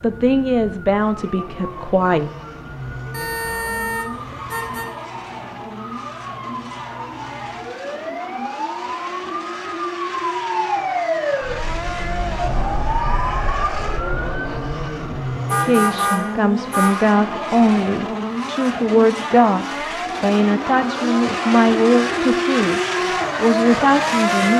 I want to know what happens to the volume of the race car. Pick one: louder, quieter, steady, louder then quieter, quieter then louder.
louder.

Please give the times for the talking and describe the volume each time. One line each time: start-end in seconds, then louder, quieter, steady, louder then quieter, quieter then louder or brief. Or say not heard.
0.0-2.3 brief
15.5-24.5 steady.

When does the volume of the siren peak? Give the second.
11 s.